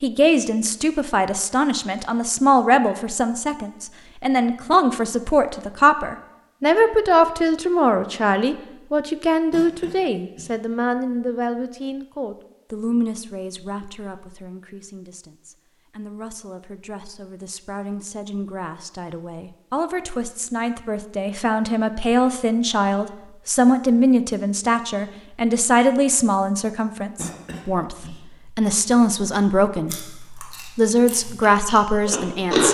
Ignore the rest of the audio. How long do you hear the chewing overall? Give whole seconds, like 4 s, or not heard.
3 s.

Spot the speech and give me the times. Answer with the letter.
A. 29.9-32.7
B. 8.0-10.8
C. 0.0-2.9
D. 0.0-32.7
D.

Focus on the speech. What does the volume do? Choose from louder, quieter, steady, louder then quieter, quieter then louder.
quieter then louder.